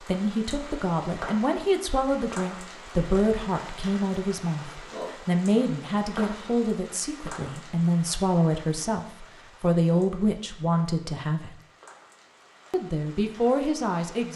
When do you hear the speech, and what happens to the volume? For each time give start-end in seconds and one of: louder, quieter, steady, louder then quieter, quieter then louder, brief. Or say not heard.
0.0-11.6 steady
12.7-14.3 brief.